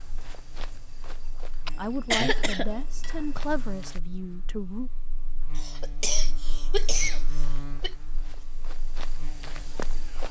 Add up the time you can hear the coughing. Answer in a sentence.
The coughing can be heard for 4 seconds in total.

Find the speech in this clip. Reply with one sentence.
The speech can be heard from 1.8 to 4.9 s.